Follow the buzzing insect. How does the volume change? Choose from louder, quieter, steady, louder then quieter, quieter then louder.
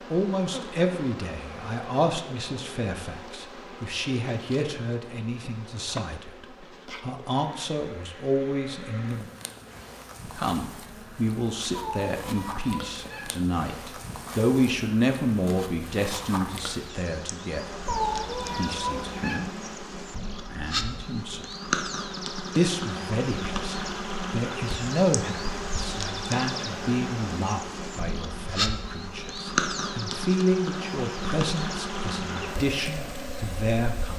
louder.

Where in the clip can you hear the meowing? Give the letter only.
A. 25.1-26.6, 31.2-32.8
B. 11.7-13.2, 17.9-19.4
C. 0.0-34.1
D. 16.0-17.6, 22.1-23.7
B.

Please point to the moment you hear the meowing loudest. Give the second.
18 s.